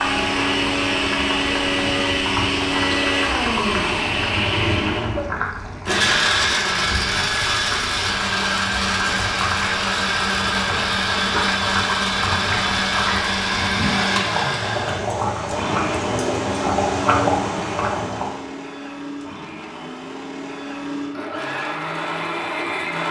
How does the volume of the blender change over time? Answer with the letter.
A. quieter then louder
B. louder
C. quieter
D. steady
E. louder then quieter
C.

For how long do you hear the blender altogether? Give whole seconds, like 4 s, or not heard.
23 s.